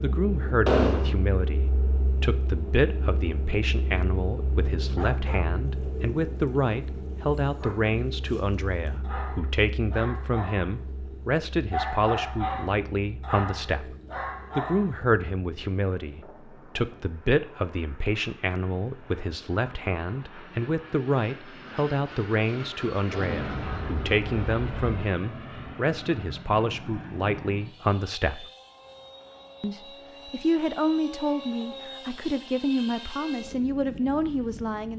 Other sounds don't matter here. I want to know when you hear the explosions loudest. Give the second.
1 s.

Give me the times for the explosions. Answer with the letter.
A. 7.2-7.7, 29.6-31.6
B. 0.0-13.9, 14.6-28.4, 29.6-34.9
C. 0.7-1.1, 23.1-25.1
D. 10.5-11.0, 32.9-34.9
C.